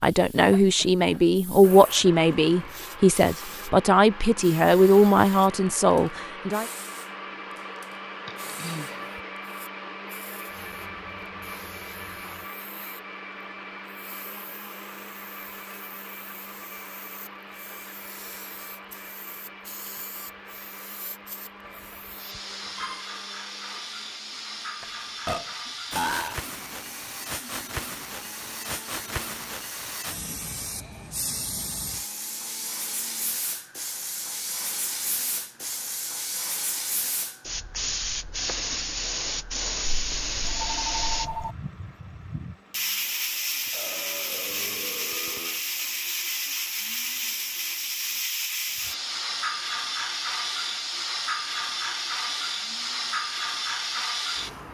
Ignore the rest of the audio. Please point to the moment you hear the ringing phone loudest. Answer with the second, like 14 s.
41 s.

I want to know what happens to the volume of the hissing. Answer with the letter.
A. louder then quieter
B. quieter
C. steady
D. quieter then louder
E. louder
E.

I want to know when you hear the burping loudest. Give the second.
26 s.